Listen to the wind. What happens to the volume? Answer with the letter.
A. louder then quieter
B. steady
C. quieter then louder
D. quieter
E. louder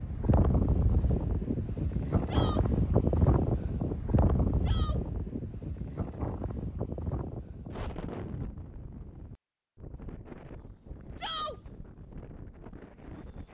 D.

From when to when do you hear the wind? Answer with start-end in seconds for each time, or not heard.
0.0-13.4.